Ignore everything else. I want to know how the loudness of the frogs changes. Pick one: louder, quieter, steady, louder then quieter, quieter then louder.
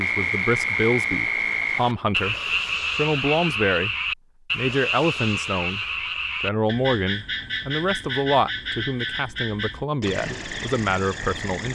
quieter.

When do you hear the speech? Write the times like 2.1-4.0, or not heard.
0.0-2.4, 3.0-4.0, 4.5-11.6.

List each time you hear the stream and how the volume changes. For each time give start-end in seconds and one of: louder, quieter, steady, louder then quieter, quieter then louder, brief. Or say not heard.
not heard.